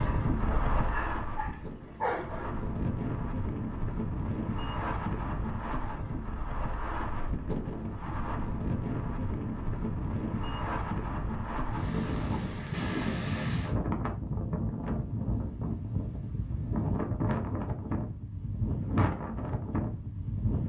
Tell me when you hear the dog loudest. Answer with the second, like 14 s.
2 s.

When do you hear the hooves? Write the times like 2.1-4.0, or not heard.
not heard.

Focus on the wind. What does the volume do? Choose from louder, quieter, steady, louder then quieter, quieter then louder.
steady.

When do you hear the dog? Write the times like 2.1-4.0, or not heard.
0.0-2.8.